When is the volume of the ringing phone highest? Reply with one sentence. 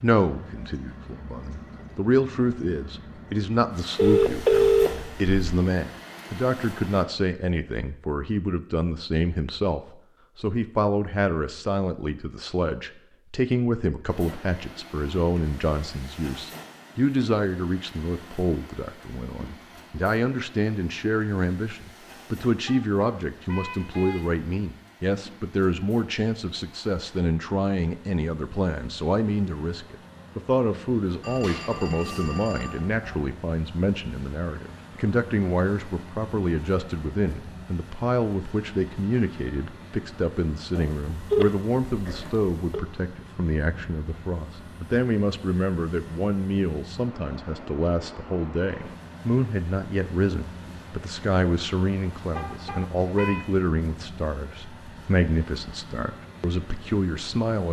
The volume of the ringing phone peaks at 5 seconds.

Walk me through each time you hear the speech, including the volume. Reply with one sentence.
You can hear the speech from 0.0 to 57.6 s, at a steady volume.